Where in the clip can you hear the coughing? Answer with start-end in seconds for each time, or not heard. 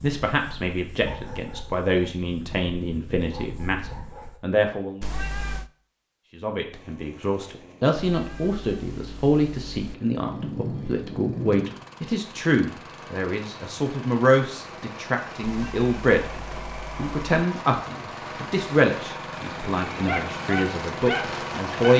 not heard.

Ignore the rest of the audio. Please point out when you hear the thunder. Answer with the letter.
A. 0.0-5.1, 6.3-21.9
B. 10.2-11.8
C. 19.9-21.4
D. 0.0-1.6
B.